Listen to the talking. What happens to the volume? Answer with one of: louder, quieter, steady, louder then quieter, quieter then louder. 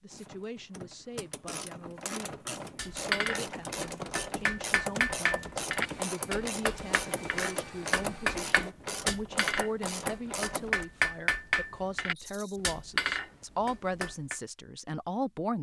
louder.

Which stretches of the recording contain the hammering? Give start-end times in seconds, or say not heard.
2.8-14.3.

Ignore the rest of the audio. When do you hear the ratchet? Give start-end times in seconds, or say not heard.
0.1-10.8.